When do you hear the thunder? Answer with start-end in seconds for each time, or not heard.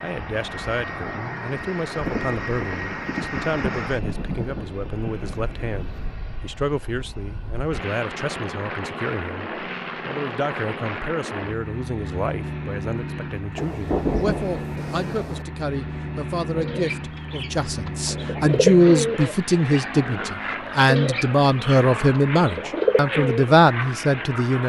1.9-6.2, 13.6-15.4.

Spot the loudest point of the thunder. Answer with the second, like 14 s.
14 s.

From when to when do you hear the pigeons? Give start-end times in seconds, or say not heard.
16.6-23.6.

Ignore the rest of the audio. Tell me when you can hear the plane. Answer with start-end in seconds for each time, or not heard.
0.0-24.6.